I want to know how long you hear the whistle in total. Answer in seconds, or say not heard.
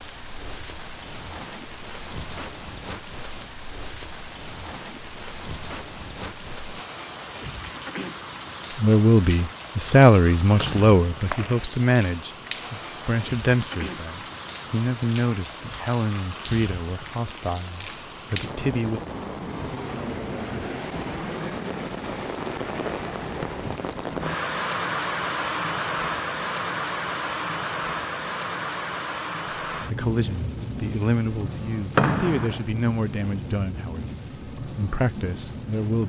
2 s.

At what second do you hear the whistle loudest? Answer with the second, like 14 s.
32 s.